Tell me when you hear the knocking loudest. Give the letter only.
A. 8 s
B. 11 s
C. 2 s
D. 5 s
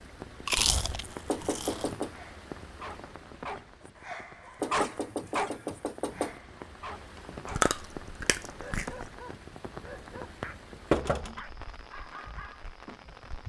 B.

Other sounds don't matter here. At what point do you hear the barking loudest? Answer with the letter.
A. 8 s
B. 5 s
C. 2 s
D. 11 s
B.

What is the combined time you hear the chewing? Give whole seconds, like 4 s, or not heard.
3 s.